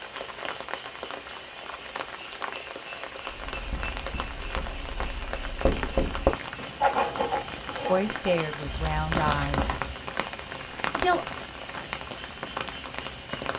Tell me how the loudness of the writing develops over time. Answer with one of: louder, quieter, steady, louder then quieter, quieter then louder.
louder then quieter.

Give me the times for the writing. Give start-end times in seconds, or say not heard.
3.3-9.9.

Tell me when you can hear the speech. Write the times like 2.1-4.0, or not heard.
7.8-9.8, 10.9-11.3.